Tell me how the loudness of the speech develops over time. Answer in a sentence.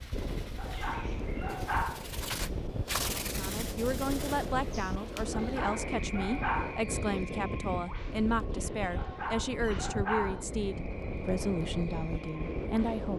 The volume of the speech stays about the same.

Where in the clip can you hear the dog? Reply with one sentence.
You can hear the dog from 0.6 to 2.0 s, from 5.3 to 6.8 s and from 8.9 to 10.4 s.